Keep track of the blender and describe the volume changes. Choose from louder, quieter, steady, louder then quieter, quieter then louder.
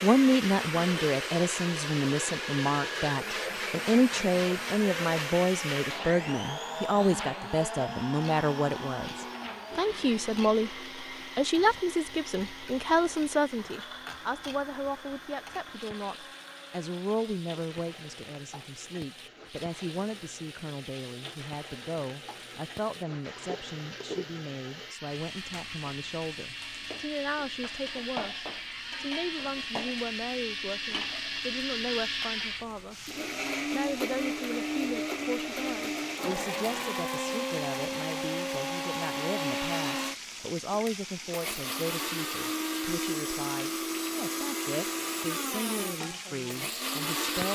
quieter then louder.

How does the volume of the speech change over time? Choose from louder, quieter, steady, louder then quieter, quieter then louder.
quieter.